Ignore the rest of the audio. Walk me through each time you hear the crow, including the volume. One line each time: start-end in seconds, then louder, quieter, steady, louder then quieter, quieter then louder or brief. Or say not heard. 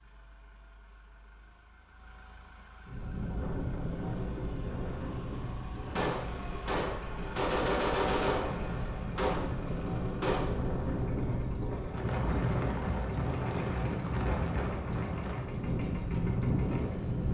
not heard.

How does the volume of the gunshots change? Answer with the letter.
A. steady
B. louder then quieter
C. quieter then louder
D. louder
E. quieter
B.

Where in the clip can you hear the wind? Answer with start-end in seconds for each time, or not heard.
2.9-17.2.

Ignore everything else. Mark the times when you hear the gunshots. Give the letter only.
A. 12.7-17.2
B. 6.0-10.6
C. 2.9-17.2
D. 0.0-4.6
B.